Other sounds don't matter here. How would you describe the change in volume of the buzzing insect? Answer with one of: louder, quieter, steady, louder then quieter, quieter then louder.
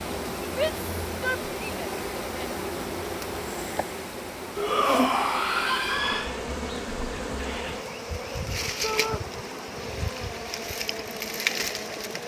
steady.